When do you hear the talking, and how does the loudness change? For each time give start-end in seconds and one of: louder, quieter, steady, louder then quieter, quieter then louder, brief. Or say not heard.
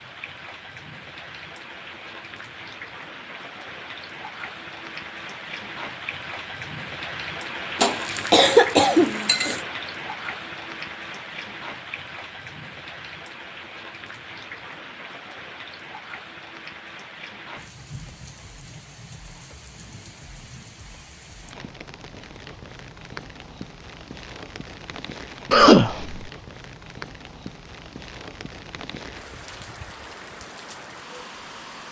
not heard.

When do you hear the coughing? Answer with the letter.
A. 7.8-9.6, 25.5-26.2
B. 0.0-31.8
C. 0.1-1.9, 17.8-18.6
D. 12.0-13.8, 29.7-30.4
A.